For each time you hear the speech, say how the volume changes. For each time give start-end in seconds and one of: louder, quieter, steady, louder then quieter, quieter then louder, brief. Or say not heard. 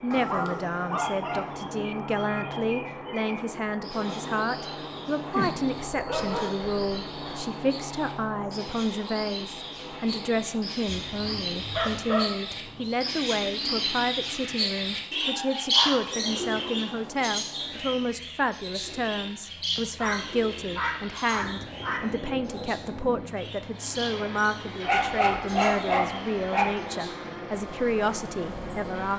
0.0-29.1 steady.